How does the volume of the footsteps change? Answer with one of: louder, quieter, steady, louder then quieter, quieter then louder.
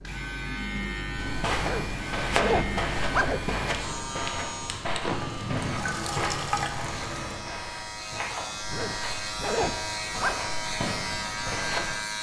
quieter.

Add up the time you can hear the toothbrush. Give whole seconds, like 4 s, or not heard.
not heard.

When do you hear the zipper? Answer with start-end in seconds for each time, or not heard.
1.6-3.5, 8.7-10.4.